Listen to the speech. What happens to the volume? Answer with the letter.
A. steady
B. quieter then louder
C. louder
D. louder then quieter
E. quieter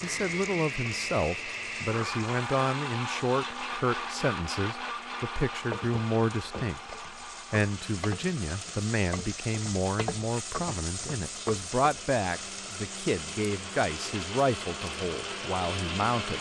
A.